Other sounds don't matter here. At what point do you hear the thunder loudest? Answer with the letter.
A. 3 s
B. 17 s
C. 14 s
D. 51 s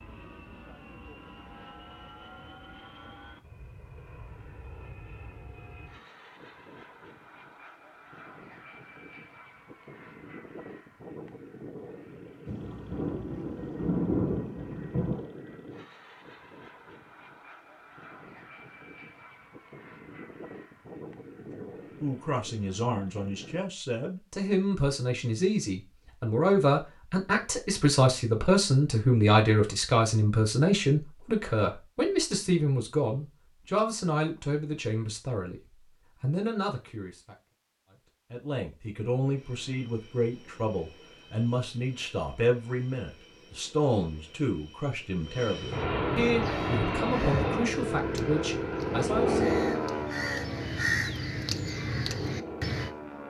C.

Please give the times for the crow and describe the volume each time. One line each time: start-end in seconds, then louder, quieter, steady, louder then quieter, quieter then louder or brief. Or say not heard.
46.2-53.0 louder.